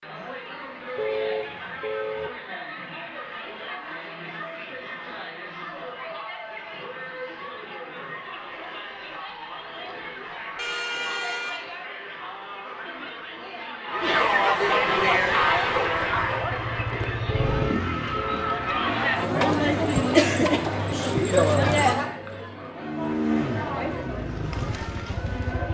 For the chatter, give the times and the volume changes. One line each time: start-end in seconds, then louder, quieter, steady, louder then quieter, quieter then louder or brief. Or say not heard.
0.0-25.7 louder.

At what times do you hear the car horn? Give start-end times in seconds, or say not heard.
0.9-2.3, 10.6-11.8, 17.2-18.6.